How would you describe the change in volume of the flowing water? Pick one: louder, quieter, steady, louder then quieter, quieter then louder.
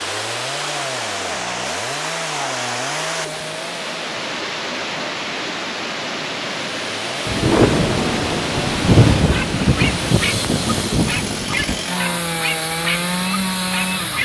quieter.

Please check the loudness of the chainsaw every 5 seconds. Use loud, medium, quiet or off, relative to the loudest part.
medium, medium, loud.